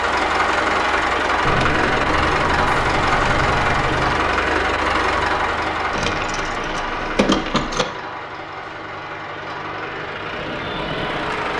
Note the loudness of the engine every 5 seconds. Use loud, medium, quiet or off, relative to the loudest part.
loud, medium, medium.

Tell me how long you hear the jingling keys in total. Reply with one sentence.
The jingling keys can be heard for 5 seconds in total.